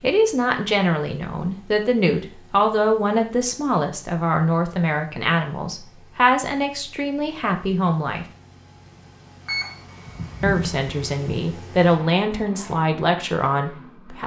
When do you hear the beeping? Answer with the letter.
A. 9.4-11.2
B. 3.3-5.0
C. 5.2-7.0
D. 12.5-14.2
A.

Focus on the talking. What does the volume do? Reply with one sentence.
The loudness of the talking stays about the same.